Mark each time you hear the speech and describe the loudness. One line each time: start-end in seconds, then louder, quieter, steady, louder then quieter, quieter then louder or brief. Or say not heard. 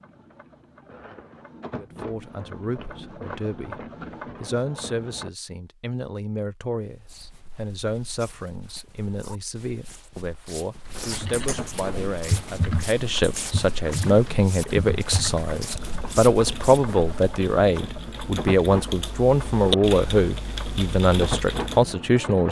1.8-22.4 louder.